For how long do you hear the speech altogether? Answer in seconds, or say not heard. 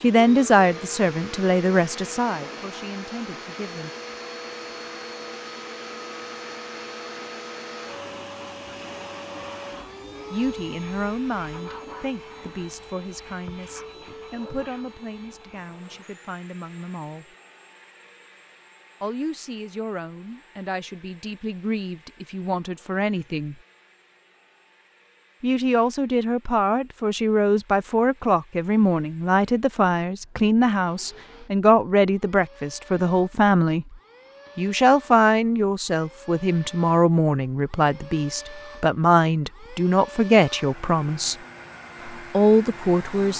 32 s.